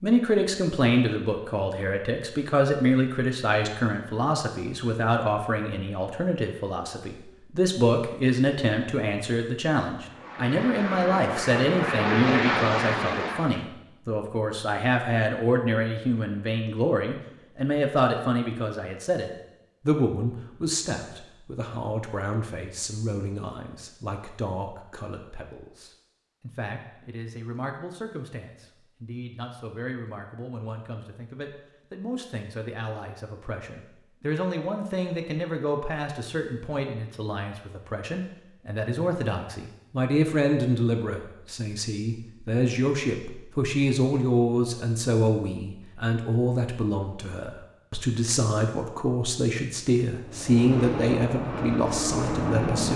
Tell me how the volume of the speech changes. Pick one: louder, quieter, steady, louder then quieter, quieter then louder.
quieter then louder.